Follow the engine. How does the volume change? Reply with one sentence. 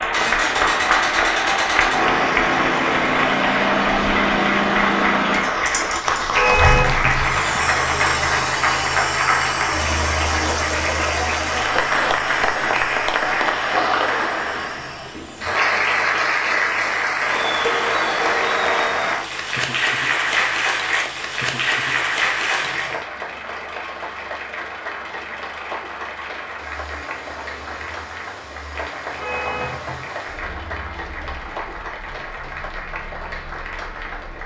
The volume of the engine goes down.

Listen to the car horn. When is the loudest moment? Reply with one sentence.
The loudest moment of the car horn is at 7 seconds.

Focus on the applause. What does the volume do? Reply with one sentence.
The loudness of the applause goes down.